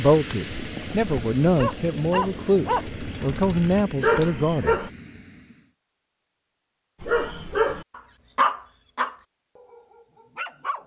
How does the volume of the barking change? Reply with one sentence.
The volume of the barking goes up, then down.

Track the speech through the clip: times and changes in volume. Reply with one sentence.
You can hear the speech from 0.0 to 4.8 s, at a steady volume.